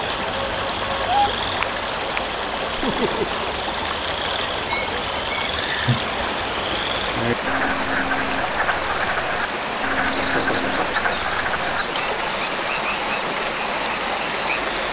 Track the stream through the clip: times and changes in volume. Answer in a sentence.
The stream can be heard from 0.0 to 14.8 s, at a steady volume.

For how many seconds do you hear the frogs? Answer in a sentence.
The frogs can be heard for 15 seconds in total.